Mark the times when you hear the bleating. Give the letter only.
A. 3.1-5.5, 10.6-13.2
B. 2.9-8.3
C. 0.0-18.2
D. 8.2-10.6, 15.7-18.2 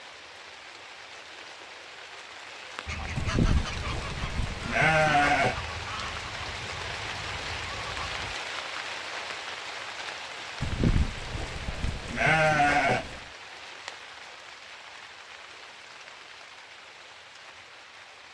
A.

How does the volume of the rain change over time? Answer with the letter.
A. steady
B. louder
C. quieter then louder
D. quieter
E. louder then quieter
E.